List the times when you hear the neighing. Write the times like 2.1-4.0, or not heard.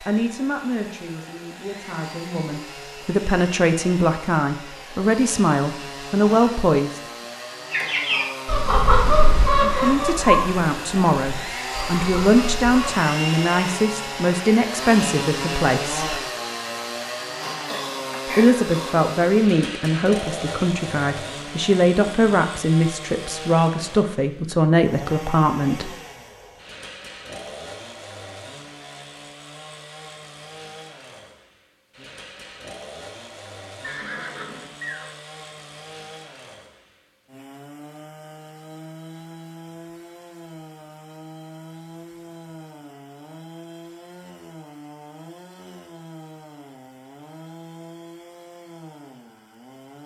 33.8-35.1.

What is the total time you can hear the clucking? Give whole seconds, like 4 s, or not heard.
5 s.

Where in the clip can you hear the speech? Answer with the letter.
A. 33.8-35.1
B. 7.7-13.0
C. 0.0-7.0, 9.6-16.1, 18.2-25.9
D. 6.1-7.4
C.